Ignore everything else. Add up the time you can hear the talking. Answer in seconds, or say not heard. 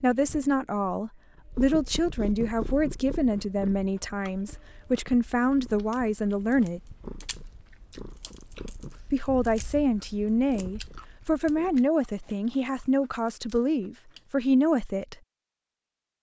13 s.